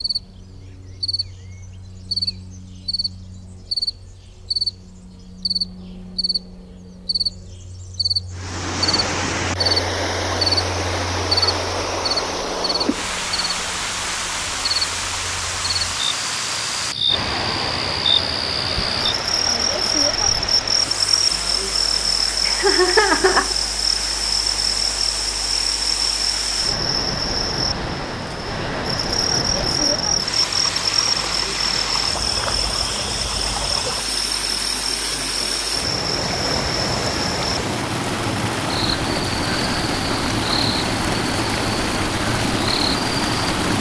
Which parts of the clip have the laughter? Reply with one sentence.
You can hear the laughter from 22.4 to 23.6 s.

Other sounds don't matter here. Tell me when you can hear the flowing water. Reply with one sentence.
The flowing water can be heard from 8.3 to 43.7 s.